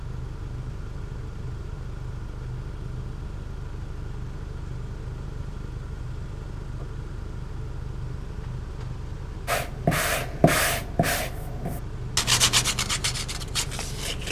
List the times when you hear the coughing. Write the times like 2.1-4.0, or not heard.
not heard.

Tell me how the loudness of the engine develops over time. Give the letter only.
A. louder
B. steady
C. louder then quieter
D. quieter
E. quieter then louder
B.